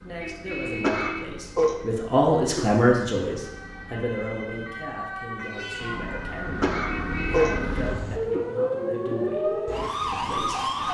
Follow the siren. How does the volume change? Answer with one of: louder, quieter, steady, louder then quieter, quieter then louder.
louder.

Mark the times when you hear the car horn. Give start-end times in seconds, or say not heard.
0.2-1.2, 6.8-7.7.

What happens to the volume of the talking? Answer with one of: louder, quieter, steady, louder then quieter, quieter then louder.
quieter.